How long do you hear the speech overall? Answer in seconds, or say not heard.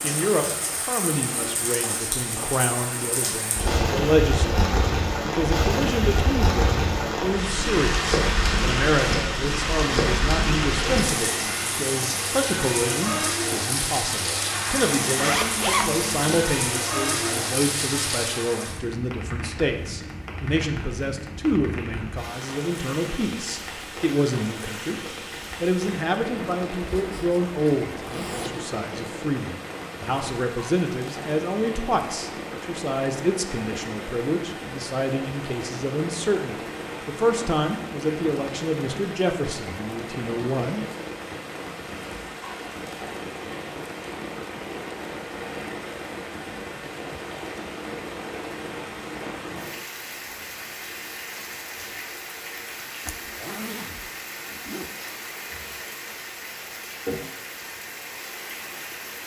41 s.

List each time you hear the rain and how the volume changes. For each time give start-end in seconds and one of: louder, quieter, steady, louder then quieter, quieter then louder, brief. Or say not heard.
0.0-59.2 quieter.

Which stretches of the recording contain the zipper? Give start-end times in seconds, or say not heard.
15.2-16.4, 26.8-28.6, 53.0-54.9.